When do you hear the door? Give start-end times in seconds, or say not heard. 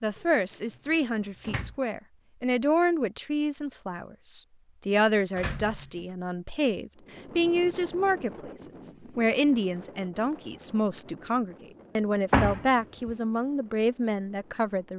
0.1-1.8, 5.3-6.0, 12.3-13.1.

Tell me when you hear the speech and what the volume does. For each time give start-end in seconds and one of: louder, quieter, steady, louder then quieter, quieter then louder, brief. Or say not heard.
0.0-14.9 steady.